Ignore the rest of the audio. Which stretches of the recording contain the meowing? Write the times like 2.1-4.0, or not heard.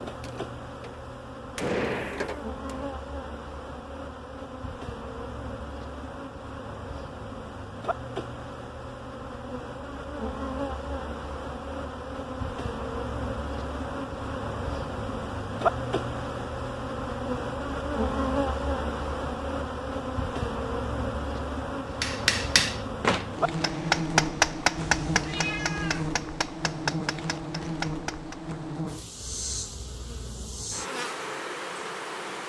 24.8-26.1.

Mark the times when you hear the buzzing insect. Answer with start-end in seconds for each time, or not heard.
0.0-32.4.